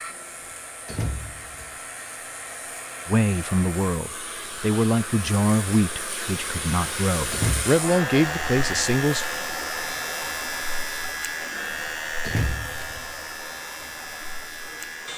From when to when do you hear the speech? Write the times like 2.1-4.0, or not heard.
3.0-9.2.